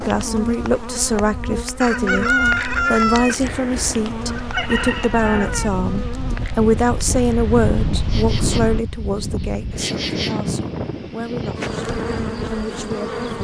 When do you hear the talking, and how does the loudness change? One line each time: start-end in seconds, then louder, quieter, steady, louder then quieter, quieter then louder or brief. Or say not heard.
0.0-13.2 quieter.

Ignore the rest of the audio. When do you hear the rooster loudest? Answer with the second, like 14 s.
2 s.